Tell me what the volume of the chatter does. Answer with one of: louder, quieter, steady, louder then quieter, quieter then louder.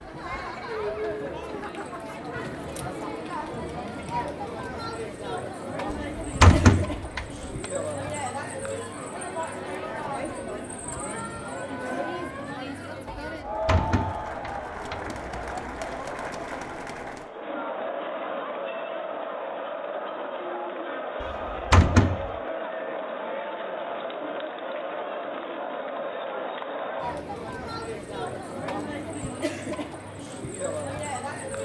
steady.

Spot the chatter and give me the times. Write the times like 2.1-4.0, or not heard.
0.0-31.6.